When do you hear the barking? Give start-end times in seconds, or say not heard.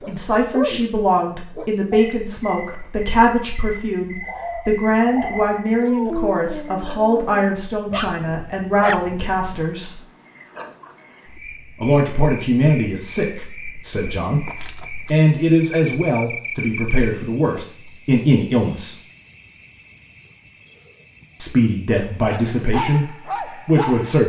0.0-2.1, 4.2-9.8, 22.1-24.2.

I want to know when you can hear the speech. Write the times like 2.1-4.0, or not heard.
0.1-10.0, 11.8-18.9, 21.4-24.2.